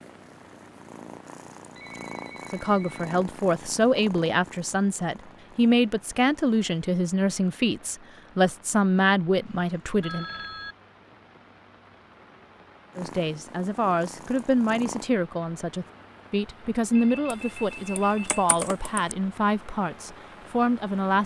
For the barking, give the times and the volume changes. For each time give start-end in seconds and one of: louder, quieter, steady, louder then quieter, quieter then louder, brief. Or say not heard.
not heard.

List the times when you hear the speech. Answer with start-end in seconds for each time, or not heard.
2.5-10.2, 12.9-21.2.